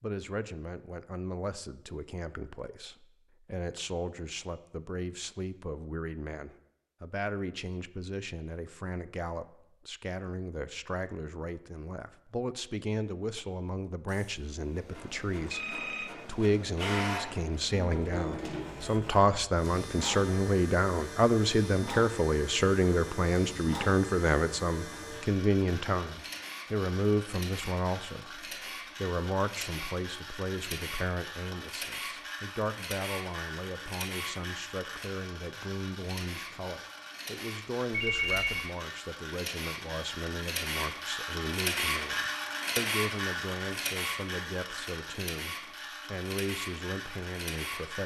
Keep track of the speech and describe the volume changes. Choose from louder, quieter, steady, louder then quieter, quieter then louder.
louder then quieter.